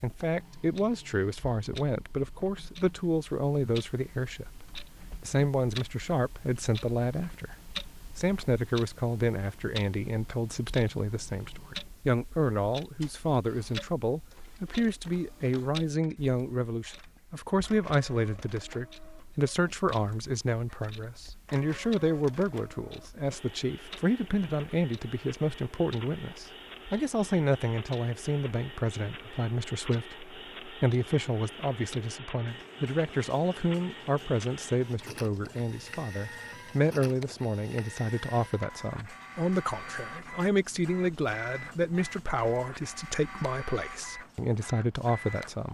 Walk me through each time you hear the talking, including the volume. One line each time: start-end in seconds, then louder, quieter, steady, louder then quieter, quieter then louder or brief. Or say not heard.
0.0-45.6 steady.